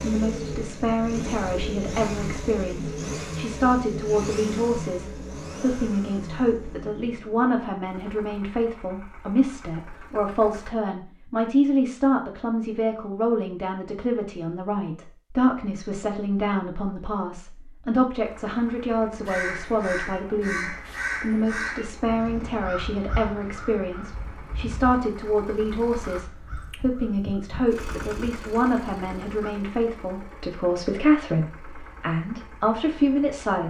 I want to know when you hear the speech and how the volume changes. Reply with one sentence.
The speech can be heard from 0.0 to 33.6 s, at a steady volume.